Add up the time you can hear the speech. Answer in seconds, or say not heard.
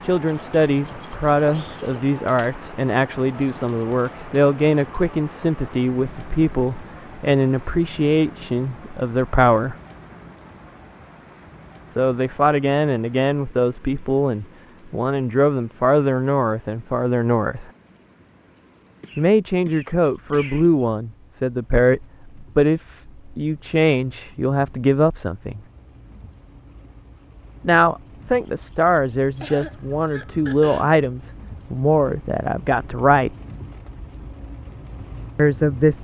28 s.